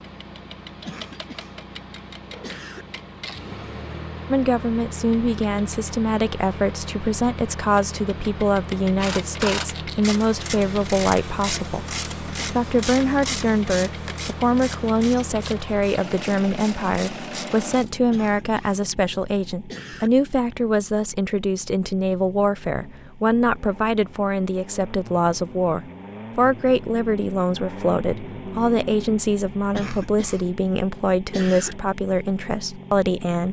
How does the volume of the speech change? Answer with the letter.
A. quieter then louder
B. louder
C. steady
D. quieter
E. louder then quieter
C.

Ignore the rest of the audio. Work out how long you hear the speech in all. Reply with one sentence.
You can hear the speech for 29 seconds altogether.